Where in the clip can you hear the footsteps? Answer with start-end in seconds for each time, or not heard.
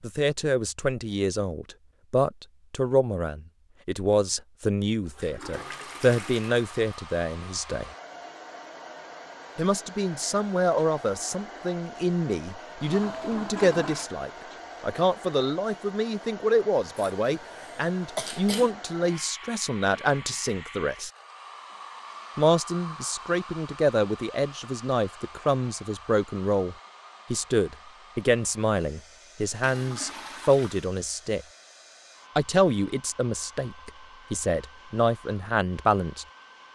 not heard.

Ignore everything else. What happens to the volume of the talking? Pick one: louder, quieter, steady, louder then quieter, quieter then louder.
steady.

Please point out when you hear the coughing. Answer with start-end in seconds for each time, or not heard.
16.9-18.7.